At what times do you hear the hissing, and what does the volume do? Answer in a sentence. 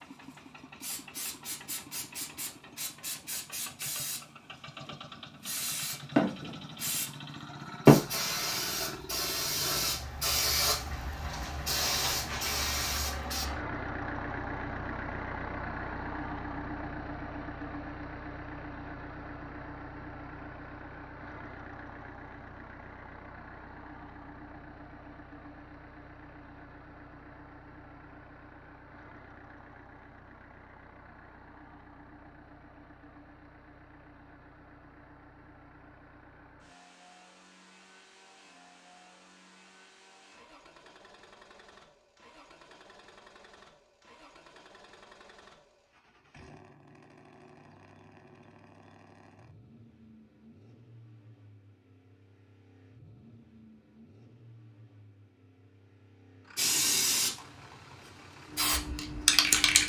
You can hear the hissing from 0.8 to 13.4 s, getting louder then quieter; briefly from 56.5 to 57.4 s; and briefly from 58.5 to 59.8 s.